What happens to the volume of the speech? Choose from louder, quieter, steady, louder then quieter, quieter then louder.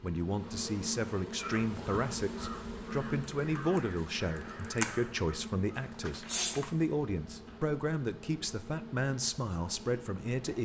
steady.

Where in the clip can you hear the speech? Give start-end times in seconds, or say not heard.
0.0-10.5.